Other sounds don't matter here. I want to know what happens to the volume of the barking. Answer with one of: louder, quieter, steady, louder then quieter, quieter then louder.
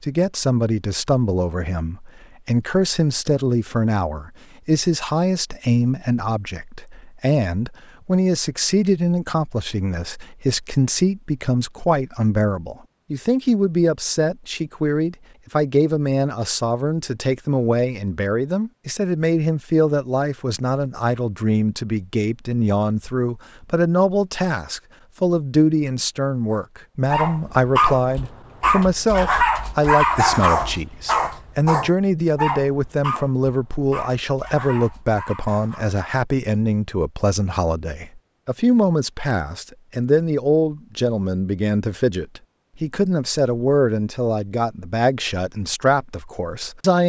quieter.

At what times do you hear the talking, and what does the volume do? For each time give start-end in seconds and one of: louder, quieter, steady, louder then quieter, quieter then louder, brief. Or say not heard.
0.0-47.0 steady.